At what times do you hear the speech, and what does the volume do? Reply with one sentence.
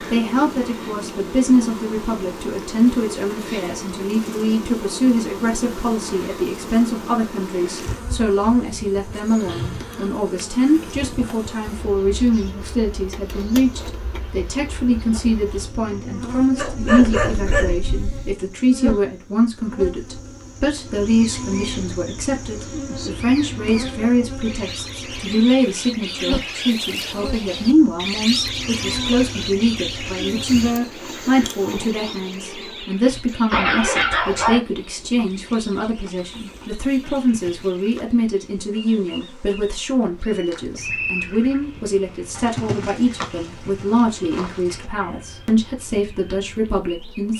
The speech can be heard from 0.1 to 47.3 s, at a steady volume.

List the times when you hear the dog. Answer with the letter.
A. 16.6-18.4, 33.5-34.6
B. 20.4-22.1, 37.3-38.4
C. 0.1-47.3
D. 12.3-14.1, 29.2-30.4
A.